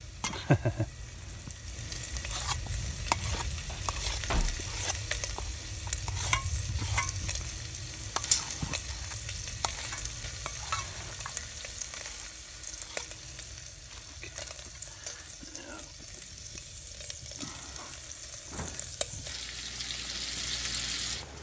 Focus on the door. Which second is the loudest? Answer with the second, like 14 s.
4 s.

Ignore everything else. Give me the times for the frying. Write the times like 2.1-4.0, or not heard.
0.0-21.3.